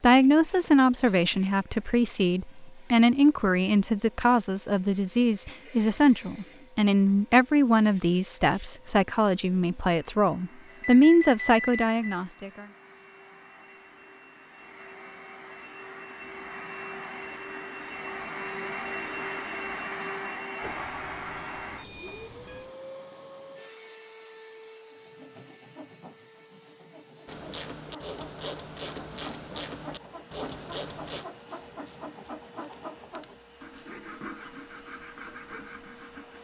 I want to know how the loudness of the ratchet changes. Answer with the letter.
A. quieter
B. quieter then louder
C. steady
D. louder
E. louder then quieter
A.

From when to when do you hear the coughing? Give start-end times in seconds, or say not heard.
not heard.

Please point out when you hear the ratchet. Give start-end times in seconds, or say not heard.
27.2-34.0.